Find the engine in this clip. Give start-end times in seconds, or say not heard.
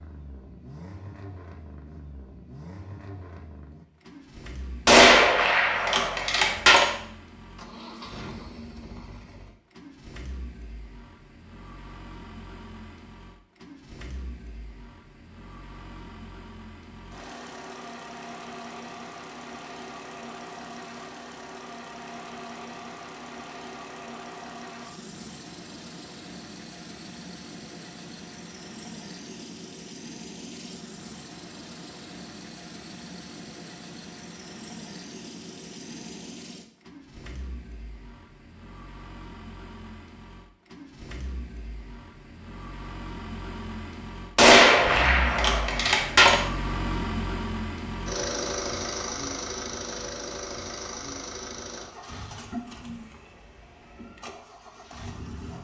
0.0-55.5.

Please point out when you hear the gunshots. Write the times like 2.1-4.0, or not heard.
4.8-6.8, 44.4-46.4.